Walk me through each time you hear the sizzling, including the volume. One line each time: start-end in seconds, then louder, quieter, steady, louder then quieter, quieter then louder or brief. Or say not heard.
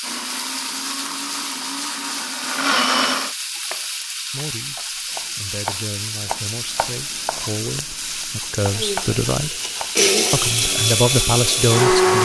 0.0-12.2 steady.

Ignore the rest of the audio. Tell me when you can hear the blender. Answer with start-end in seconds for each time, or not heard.
0.0-3.4, 8.6-12.2.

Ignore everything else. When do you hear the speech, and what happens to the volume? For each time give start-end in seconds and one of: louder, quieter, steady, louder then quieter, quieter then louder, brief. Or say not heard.
4.3-9.6 louder
10.3-12.2 brief.